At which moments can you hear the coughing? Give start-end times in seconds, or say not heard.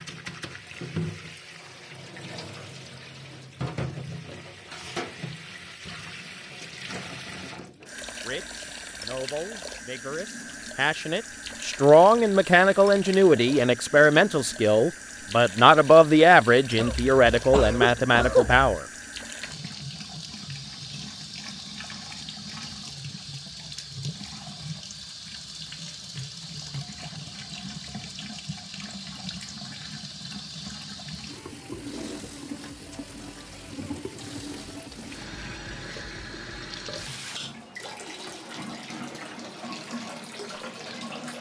16.8-18.7.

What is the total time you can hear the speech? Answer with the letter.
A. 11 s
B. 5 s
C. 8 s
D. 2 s
A.